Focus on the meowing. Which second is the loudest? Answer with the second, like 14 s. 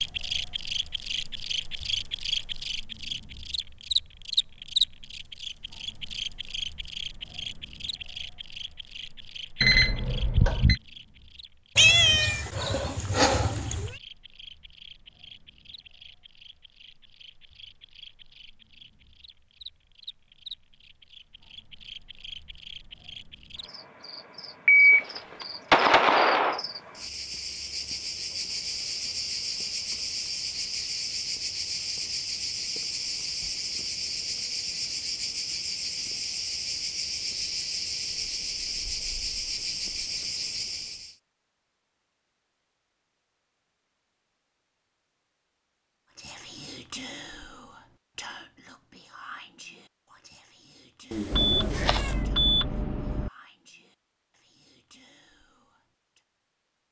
12 s.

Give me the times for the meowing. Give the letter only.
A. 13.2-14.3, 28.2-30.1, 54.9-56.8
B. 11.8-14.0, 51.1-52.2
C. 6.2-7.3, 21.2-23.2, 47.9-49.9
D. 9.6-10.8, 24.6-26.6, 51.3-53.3
B.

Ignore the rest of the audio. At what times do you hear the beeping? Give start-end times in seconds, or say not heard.
9.6-10.8, 24.6-26.6, 51.3-53.3.